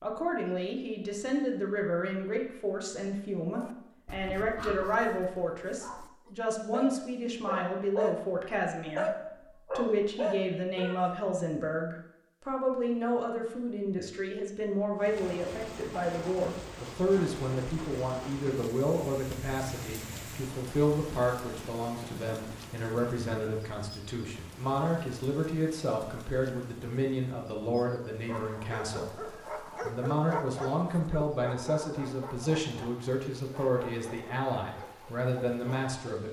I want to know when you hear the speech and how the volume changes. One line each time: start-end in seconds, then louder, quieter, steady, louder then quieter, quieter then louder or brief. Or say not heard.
0.0-36.2 steady.